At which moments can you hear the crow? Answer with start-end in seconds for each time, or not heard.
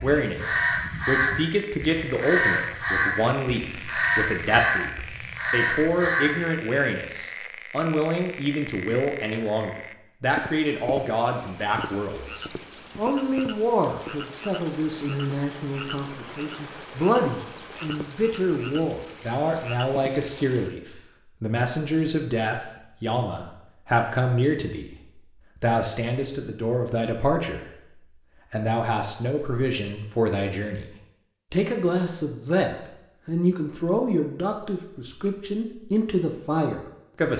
0.0-6.4.